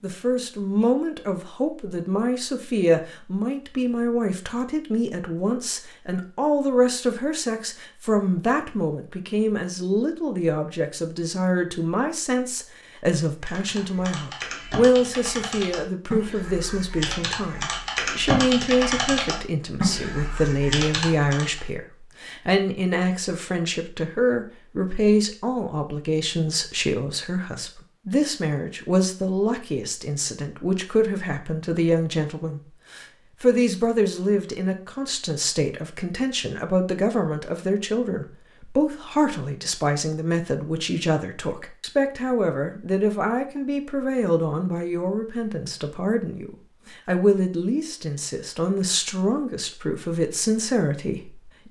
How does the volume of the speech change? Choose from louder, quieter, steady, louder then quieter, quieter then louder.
steady.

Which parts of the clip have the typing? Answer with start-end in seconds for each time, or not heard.
13.4-21.6.